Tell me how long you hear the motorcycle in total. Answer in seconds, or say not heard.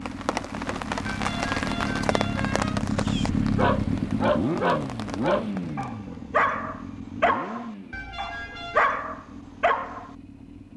11 s.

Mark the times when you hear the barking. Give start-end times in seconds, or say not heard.
2.9-10.1.